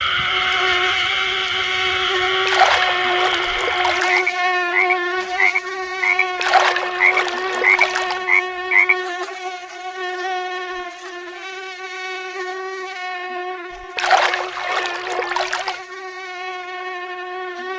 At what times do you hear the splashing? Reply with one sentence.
You can hear the splashing from 2.5 to 4.2 s, from 6.3 to 8.2 s and from 13.9 to 15.8 s.